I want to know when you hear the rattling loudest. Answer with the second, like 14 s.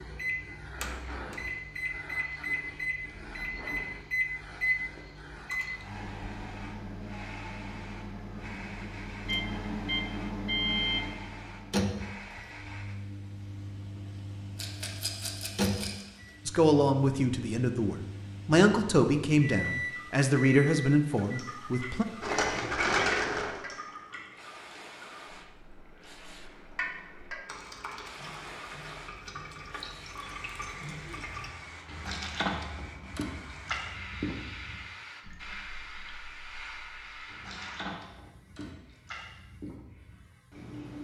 23 s.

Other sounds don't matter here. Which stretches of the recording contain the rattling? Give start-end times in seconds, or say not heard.
14.6-16.1, 22.2-23.6.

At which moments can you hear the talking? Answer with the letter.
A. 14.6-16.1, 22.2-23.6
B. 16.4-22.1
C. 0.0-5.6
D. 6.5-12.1
B.